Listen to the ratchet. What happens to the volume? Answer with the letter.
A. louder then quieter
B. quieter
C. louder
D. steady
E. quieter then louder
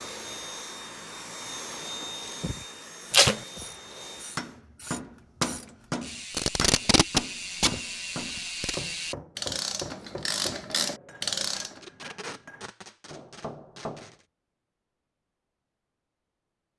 C.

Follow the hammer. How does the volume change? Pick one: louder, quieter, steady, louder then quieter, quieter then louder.
quieter.